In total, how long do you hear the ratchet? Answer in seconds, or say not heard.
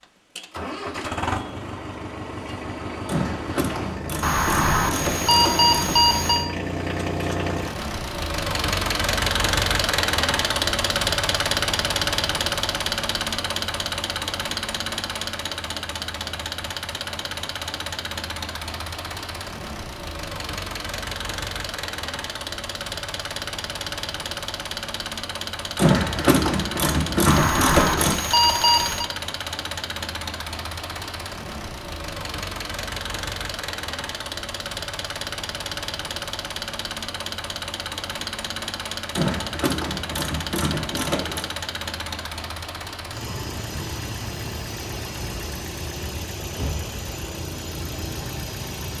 8 s.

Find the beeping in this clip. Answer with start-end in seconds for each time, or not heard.
4.2-6.5, 27.2-29.1.